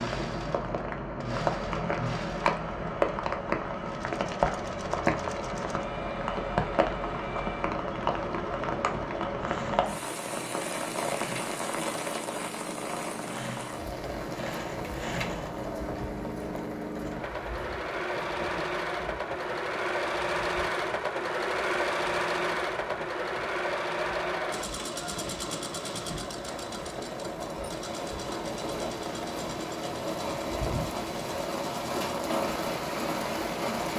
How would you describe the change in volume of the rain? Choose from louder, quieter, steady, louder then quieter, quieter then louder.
quieter then louder.